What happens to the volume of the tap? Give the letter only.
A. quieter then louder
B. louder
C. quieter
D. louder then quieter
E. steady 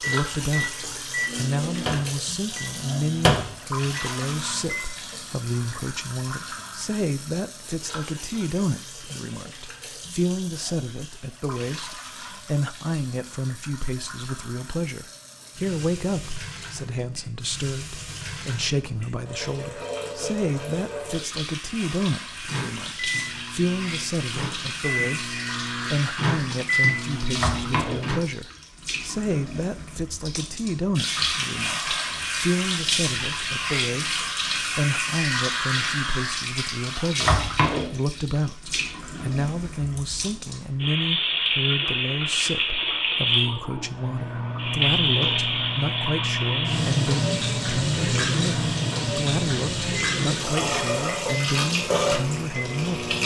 B.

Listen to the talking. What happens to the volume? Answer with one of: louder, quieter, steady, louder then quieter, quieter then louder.
steady.